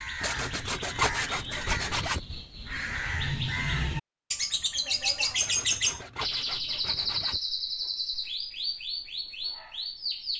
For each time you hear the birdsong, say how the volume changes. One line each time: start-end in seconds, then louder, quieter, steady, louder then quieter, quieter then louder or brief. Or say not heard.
0.0-10.3 louder then quieter.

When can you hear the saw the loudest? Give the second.
1 s.